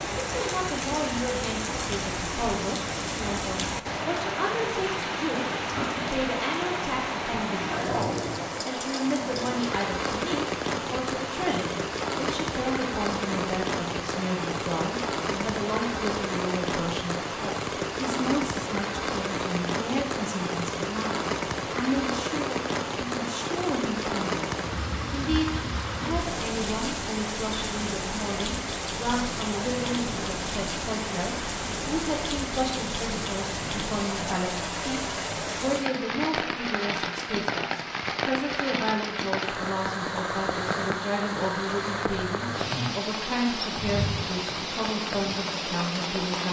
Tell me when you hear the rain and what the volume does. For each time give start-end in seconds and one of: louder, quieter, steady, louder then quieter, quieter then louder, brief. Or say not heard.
0.0-46.4 steady.